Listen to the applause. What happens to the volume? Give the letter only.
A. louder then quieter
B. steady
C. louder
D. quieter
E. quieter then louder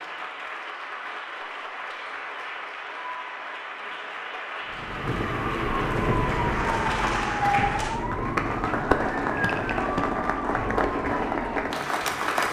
C.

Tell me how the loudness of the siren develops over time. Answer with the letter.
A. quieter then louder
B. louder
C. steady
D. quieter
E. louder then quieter
D.